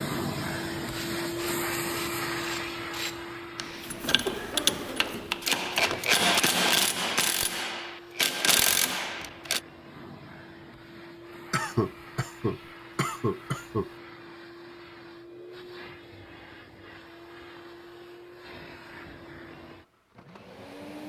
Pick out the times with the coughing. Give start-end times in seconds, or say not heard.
4.0-5.5, 11.5-13.9.